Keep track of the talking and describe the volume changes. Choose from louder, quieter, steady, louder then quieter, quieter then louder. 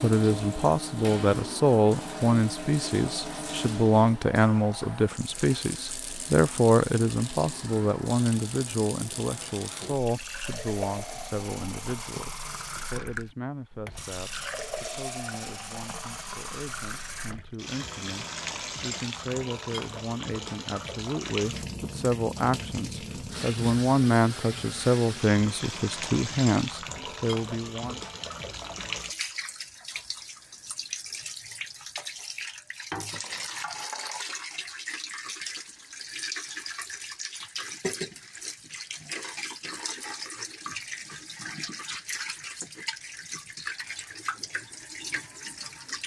quieter then louder.